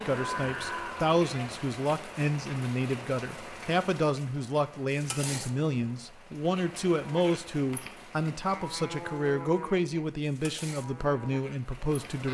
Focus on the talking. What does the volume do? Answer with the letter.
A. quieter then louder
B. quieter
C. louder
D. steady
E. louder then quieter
D.